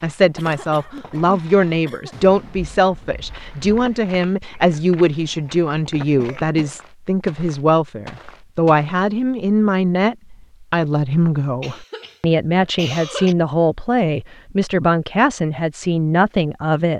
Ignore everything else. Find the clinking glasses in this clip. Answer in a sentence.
The clinking glasses can't be heard in this clip.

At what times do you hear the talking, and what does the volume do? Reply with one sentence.
The talking can be heard from 0.0 to 16.9 s, at a steady volume.